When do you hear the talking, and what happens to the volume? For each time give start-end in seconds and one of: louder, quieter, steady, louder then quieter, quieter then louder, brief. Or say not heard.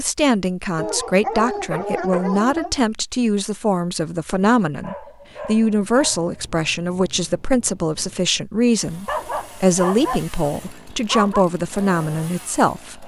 0.0-13.0 steady.